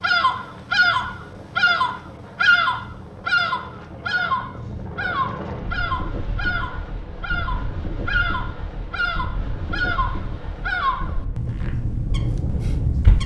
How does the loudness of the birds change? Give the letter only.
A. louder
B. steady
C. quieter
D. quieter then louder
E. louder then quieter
C.